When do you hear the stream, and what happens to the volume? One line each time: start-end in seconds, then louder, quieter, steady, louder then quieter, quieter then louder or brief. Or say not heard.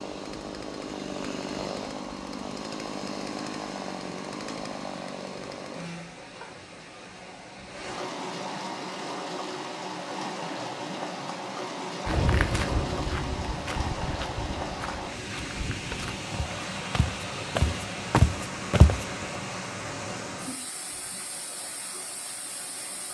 0.0-23.0 louder.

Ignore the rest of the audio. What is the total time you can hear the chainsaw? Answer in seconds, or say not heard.
6 s.